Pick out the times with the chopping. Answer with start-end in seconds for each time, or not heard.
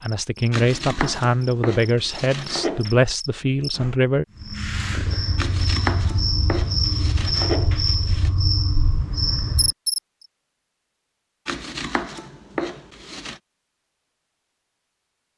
0.5-2.9, 5.3-8.3, 11.4-13.4.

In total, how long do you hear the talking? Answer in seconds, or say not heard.
4 s.